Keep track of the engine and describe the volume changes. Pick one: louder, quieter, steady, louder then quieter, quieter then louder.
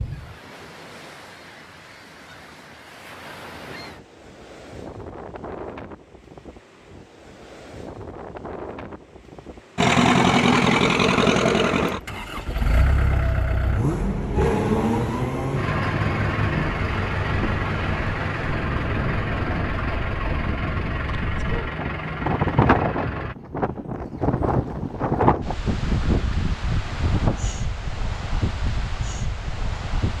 quieter.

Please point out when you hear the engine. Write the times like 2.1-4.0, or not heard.
9.8-23.4.